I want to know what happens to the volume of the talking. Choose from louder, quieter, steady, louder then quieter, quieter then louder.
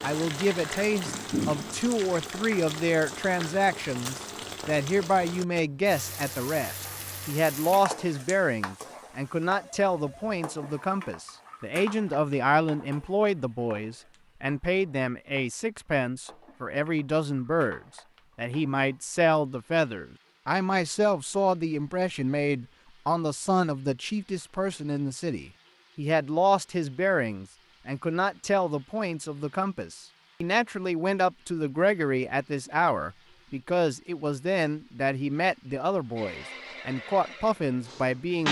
steady.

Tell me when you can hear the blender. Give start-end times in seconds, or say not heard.
36.1-38.4.